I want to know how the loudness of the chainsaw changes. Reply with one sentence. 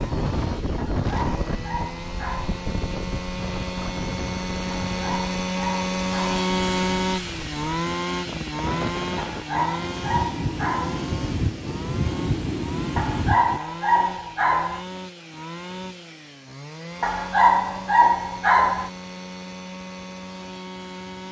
The loudness of the chainsaw goes up, then down.